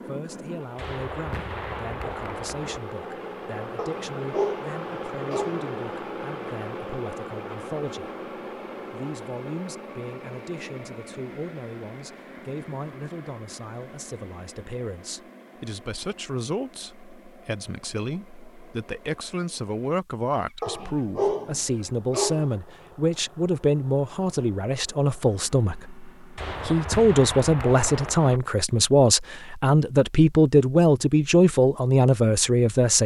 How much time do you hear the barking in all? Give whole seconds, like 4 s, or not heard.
4 s.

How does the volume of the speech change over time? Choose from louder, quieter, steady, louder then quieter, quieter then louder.
louder.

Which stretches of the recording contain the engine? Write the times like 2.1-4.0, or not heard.
0.0-26.6.